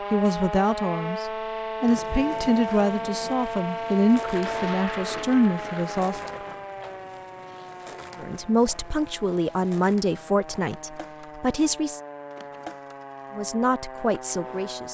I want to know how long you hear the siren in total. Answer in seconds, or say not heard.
15 s.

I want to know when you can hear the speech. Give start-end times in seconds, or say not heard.
0.1-6.2, 8.2-12.0, 13.3-14.9.